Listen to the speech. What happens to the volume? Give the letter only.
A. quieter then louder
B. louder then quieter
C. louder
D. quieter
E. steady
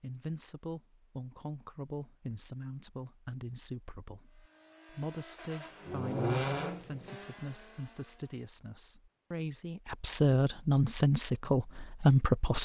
C.